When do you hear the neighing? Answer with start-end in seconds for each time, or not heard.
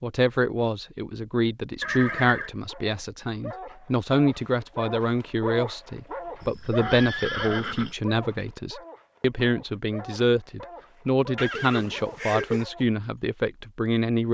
1.8-2.5, 6.4-8.0, 11.3-12.7.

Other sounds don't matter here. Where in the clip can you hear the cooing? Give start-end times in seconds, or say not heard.
not heard.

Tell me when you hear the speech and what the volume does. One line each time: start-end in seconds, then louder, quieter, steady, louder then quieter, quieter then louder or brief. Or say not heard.
0.0-14.2 steady.